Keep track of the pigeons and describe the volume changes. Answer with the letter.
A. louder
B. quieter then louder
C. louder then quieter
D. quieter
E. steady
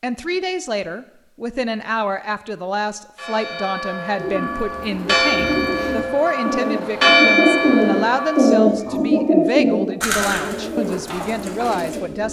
C.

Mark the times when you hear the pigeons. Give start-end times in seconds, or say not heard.
4.2-12.2.